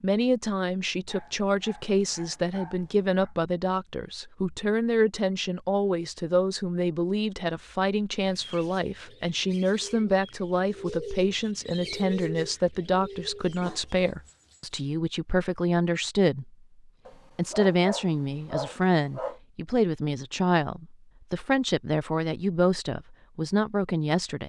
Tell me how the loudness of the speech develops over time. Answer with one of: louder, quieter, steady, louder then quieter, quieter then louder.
steady.